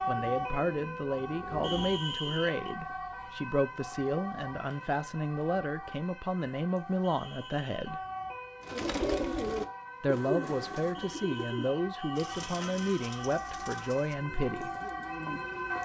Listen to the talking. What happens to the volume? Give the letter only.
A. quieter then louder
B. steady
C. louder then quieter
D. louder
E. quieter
B.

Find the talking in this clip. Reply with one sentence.
The talking can be heard from 0.1 to 8.0 s and from 10.0 to 14.7 s.